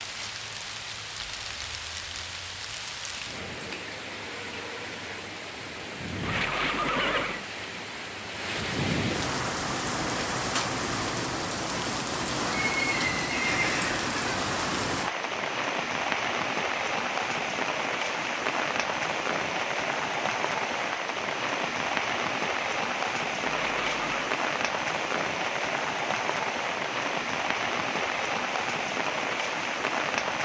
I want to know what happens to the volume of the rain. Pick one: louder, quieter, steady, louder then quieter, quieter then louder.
louder.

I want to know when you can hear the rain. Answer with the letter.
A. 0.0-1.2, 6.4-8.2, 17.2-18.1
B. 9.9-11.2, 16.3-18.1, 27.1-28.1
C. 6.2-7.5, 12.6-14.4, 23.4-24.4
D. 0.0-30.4
D.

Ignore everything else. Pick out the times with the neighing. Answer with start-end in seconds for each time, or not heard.
6.2-7.5, 12.6-14.4, 23.4-24.4.